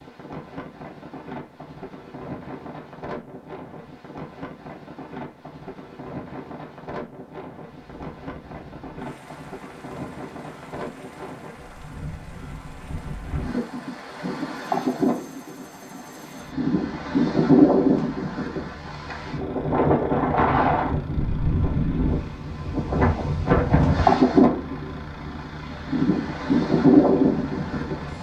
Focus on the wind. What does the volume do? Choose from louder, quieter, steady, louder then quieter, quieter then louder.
louder.